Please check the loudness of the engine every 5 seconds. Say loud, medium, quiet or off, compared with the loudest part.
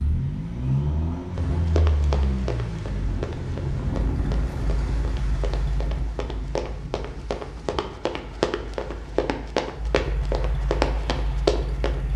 loud, medium, medium.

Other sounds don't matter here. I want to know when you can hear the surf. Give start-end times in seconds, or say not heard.
0.0-12.1.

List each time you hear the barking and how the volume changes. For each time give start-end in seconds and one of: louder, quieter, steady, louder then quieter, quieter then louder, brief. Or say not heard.
not heard.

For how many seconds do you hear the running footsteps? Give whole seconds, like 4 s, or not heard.
11 s.